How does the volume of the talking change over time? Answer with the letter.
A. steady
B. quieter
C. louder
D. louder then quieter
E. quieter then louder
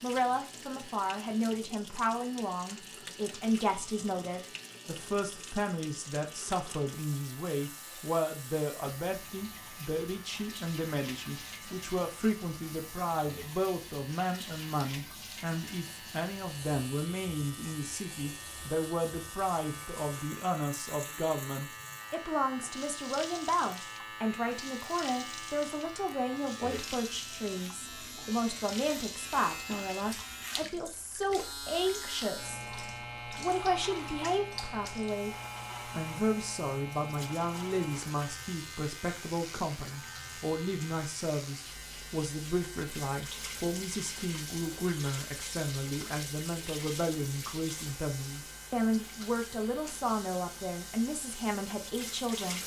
A.